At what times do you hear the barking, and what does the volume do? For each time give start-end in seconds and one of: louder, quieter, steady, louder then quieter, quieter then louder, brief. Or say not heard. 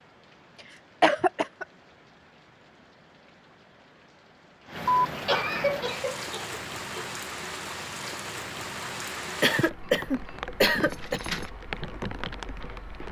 not heard.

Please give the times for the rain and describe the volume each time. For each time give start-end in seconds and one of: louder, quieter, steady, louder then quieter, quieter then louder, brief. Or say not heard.
0.0-13.0 louder.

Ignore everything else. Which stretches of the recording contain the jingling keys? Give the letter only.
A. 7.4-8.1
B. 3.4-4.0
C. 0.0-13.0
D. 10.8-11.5
D.